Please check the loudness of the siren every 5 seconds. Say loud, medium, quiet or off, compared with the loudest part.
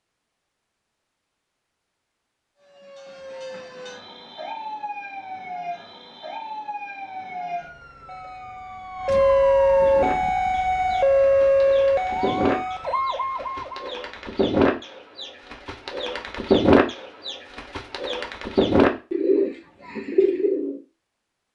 quiet, loud, loud, off, off.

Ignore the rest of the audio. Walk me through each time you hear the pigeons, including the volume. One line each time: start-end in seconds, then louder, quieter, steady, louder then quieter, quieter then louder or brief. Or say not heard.
9.8-20.8 louder.